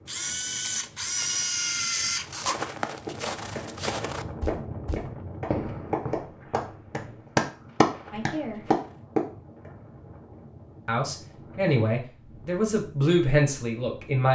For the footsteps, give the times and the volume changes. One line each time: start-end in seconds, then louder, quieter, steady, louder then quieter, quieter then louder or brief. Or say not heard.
2.2-9.0 quieter.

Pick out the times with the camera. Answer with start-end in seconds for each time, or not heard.
0.1-2.6.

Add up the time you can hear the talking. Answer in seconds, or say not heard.
4 s.